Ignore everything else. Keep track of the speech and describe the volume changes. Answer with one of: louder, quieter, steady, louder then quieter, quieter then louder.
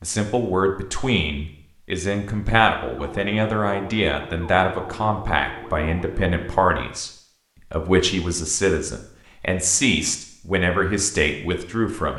steady.